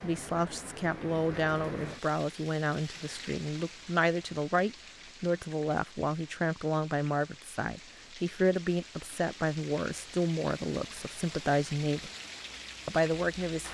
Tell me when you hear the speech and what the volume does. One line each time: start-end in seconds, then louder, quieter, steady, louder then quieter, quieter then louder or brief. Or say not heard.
0.0-12.1 steady
12.8-13.6 brief.